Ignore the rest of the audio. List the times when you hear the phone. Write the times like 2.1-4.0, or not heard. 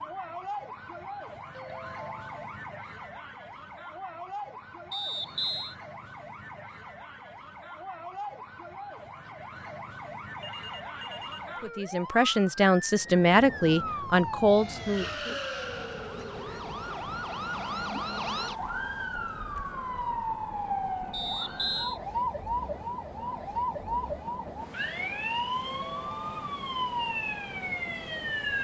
1.5-2.5, 10.3-11.6, 25.6-26.6.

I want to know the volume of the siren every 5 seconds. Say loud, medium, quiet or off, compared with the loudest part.
medium, medium, medium, loud, loud, loud.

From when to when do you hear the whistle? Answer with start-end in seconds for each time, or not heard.
4.9-5.8, 21.1-22.0.